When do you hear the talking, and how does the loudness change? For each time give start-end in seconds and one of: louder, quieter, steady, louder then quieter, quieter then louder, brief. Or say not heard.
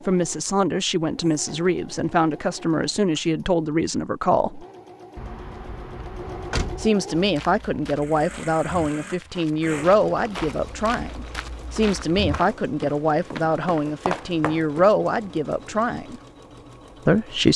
0.1-4.7 steady
6.8-16.2 steady
17.1-17.5 brief.